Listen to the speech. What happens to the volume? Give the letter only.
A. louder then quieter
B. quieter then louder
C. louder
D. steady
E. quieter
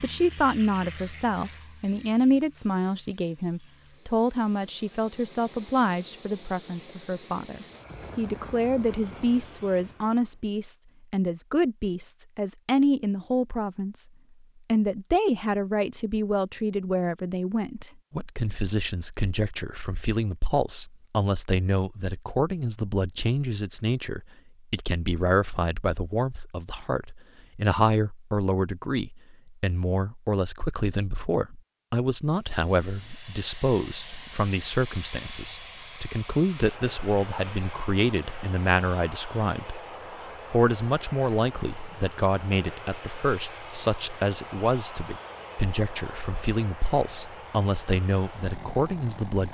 D.